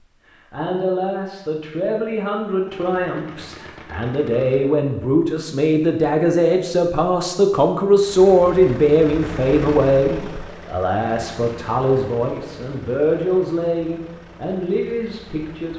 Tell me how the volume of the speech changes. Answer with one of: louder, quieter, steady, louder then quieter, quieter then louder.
louder then quieter.